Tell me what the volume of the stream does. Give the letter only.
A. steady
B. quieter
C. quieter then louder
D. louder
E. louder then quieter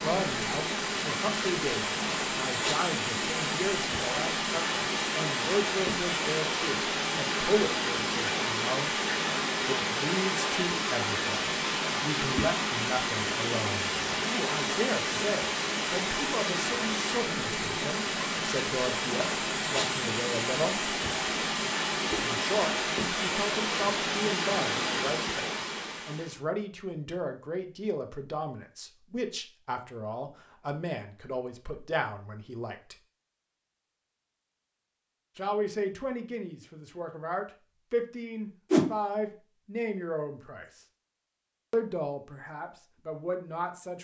A.